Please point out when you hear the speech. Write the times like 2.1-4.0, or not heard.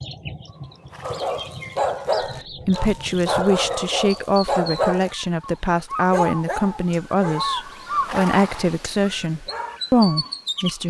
2.6-10.8.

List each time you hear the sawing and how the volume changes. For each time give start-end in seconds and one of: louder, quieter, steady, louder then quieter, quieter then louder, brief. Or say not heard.
not heard.